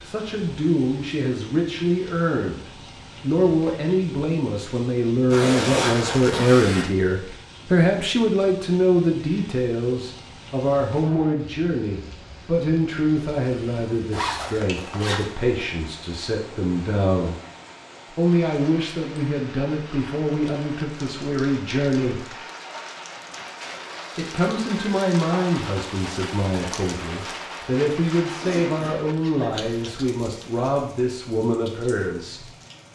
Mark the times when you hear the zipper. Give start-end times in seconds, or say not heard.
5.3-6.8, 14.1-15.2, 28.4-30.1.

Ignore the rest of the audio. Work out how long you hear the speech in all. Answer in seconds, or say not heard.
30 s.